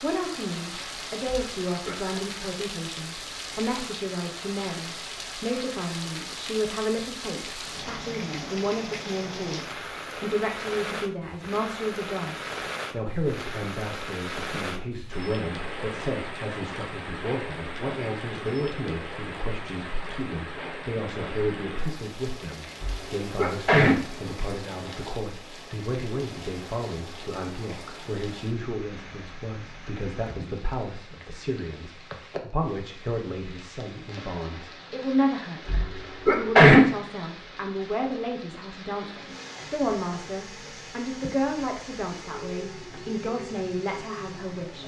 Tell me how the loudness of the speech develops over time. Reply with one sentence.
The loudness of the speech stays about the same.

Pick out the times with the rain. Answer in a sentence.
You can hear the rain from 0.0 to 44.8 s.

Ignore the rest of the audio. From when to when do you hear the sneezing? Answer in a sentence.
You can hear the sneezing from 1.2 to 2.2 s, from 22.8 to 23.9 s and from 35.6 to 36.8 s.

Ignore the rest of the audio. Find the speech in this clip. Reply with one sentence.
You can hear the speech from 0.0 to 44.8 s.